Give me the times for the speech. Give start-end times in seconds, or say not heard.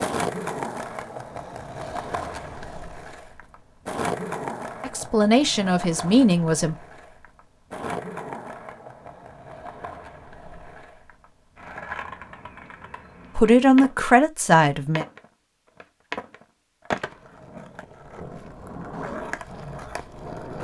4.8-6.8, 13.3-15.1.